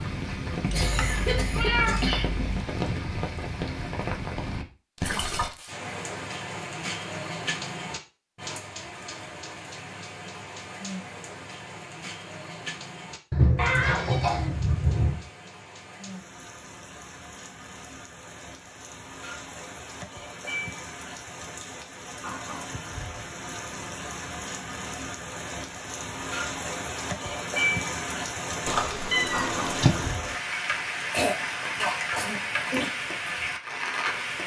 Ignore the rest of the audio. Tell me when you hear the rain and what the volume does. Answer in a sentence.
The rain can be heard from 0.0 to 34.4 s, getting quieter then louder.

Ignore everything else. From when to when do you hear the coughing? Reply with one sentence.
You can hear the coughing from 0.7 to 2.2 s, from 13.6 to 14.6 s and from 31.1 to 32.9 s.